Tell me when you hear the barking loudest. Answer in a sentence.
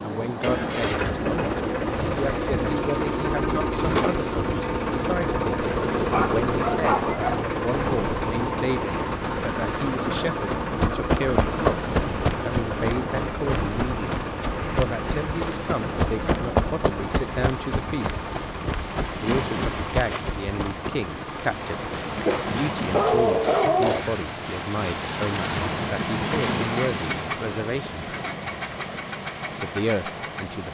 The volume of the barking peaks at 23 seconds.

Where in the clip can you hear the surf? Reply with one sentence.
You can hear the surf from 0.0 to 30.6 s.